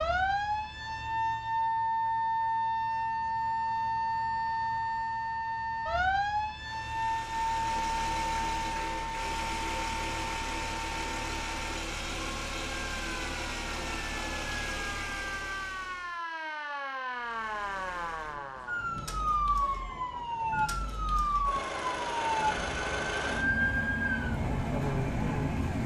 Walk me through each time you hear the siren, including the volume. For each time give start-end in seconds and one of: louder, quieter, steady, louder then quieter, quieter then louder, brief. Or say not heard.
0.0-25.8 quieter then louder.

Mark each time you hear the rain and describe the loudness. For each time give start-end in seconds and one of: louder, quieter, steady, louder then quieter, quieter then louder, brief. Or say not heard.
not heard.